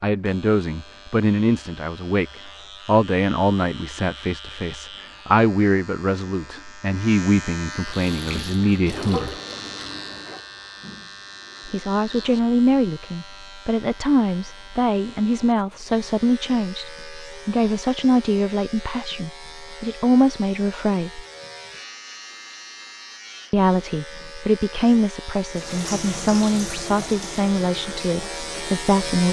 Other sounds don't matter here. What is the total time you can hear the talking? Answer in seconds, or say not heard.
24 s.